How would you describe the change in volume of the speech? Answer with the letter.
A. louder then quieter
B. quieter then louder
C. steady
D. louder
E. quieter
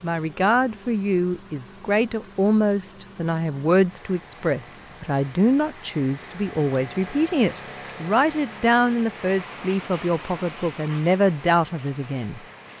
C.